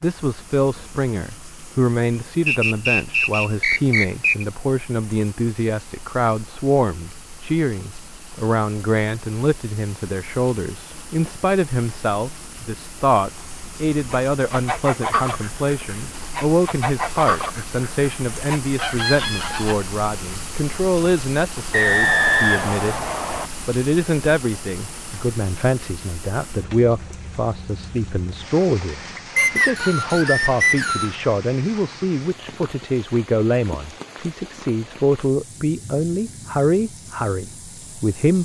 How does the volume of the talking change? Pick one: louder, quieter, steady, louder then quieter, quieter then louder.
steady.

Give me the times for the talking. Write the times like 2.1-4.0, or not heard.
0.0-38.4.